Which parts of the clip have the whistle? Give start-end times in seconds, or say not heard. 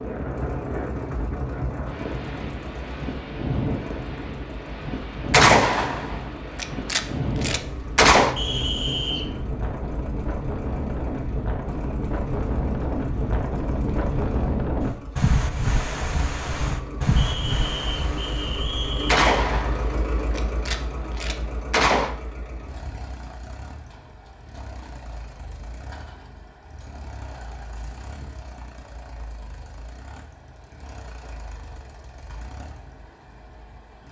8.3-9.3, 17.1-19.2.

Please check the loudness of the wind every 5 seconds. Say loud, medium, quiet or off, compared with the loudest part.
loud, loud, loud, loud, off, off, off.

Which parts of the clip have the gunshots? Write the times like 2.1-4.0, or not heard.
5.3-8.3, 19.1-22.1.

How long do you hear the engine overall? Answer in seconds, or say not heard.
34 s.